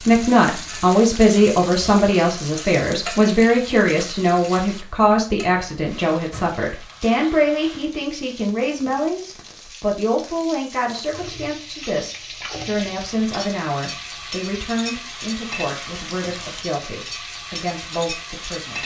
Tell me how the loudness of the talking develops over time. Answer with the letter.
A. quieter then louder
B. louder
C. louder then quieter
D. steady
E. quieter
E.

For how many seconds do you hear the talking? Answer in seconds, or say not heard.
19 s.